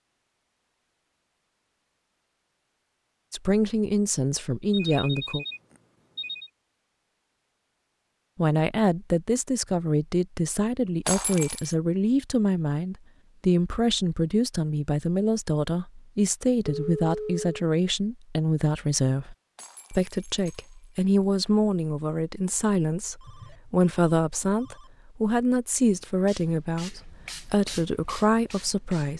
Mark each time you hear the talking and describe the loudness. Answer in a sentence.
The talking can be heard briefly from 3.3 to 5.5 s; and from 8.3 to 29.1 s, at a steady volume.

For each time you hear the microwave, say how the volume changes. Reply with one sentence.
You can't hear the microwave here.